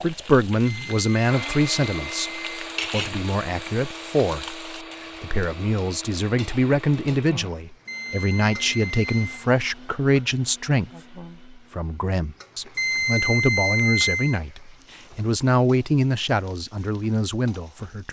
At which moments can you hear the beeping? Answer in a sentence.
The beeping can be heard from 0.7 to 2.6 s, from 7.8 to 9.4 s and from 12.8 to 14.4 s.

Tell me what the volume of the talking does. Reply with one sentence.
The loudness of the talking stays about the same.